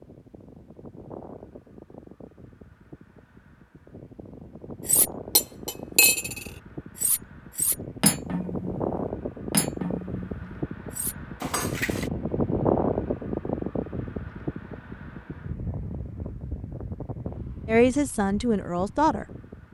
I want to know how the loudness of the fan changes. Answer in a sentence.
The loudness of the fan goes up, then down.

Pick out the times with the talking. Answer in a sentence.
You can hear the talking from 17.6 to 19.7 s.